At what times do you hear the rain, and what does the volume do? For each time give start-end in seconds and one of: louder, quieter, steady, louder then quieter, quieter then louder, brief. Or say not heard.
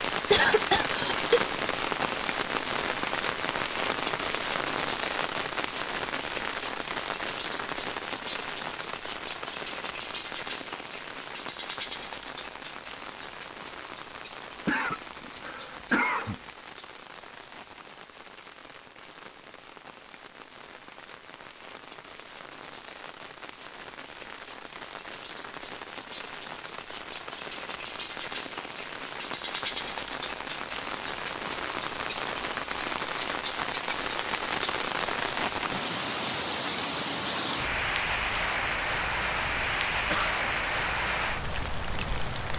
0.0-42.5 quieter then louder.